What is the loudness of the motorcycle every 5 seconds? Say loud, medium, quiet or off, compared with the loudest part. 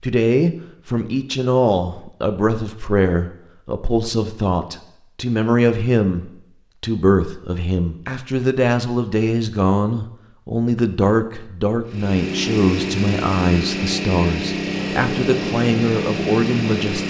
off, off, loud, loud.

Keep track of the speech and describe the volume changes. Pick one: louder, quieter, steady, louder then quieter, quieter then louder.
steady.